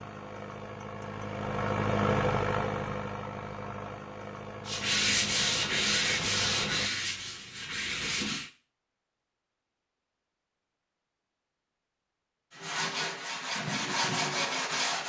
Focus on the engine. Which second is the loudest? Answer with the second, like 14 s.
2 s.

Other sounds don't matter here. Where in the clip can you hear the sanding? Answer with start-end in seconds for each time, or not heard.
4.7-8.5, 12.5-15.0.